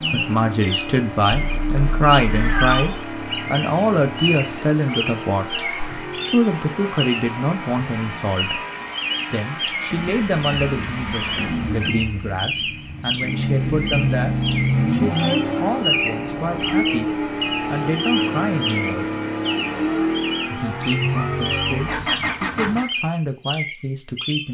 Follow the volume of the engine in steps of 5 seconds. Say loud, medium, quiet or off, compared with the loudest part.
medium, medium, loud, loud, loud.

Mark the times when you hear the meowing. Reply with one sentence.
The meowing can be heard from 1.3 to 3.0 s, from 9.9 to 11.9 s and from 21.1 to 21.6 s.